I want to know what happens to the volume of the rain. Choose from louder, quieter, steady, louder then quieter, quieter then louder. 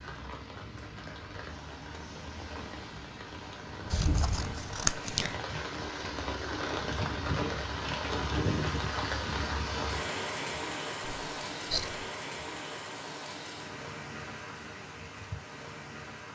louder then quieter.